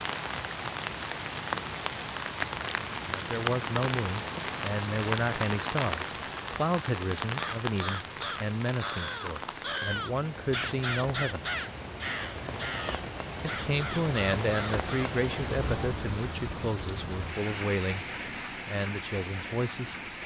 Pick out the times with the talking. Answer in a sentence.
The talking can be heard from 3.0 to 11.4 s, from 13.4 to 18.1 s and from 18.6 to 20.0 s.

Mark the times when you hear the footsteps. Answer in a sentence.
The footsteps can't be heard in this clip.